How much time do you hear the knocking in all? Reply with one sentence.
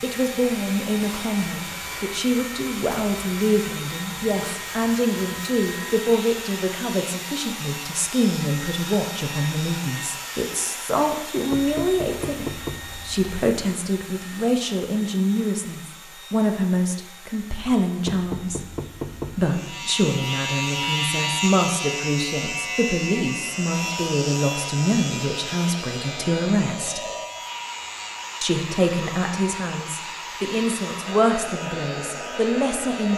The knocking can be heard for 3 seconds in total.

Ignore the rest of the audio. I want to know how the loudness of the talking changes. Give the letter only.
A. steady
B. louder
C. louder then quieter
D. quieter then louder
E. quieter
A.